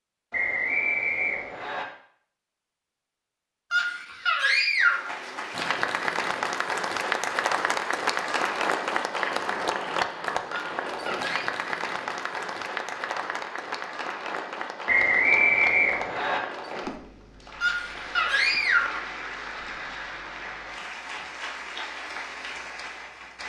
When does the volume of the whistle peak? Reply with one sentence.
The volume of the whistle peaks at 15 seconds.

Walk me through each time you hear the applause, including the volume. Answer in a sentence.
The applause can be heard from 4.8 to 23.4 s, getting quieter.